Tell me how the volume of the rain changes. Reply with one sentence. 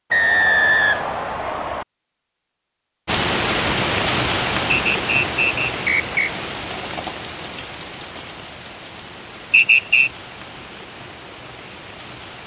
The volume of the rain goes down.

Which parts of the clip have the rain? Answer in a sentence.
The rain can be heard from 3.0 to 12.4 s.